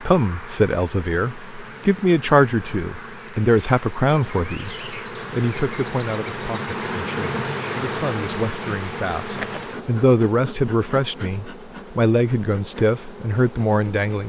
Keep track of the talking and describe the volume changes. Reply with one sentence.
The volume of the talking goes down, then up.